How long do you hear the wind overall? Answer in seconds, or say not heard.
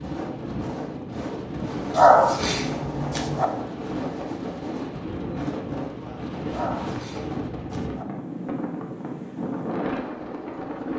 11 s.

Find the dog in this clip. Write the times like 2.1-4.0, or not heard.
1.9-3.5, 6.5-8.1.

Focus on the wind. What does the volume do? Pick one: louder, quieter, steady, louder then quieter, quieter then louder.
steady.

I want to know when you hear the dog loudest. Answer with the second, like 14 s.
2 s.